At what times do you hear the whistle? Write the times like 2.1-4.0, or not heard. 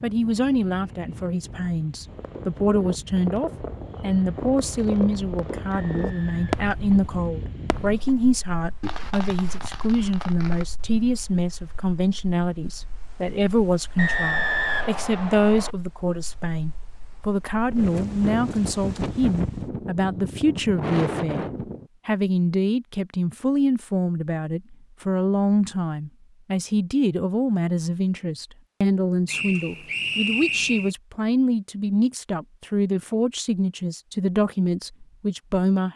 5.7-6.7, 13.9-15.8, 29.2-30.9.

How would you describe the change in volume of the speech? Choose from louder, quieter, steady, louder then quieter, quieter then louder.
steady.